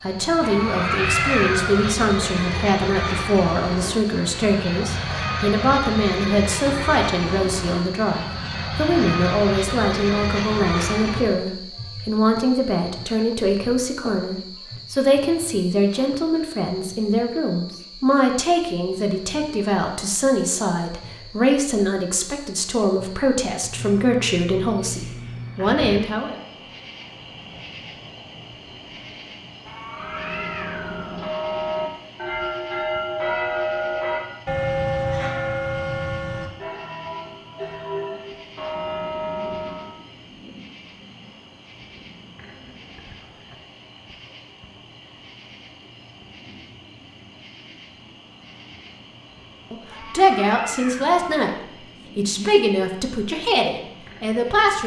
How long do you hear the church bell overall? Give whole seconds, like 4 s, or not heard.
10 s.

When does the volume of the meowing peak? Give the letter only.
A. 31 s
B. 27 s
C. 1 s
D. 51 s
C.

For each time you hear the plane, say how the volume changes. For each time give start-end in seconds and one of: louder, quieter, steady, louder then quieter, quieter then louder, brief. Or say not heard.
0.0-11.4 steady.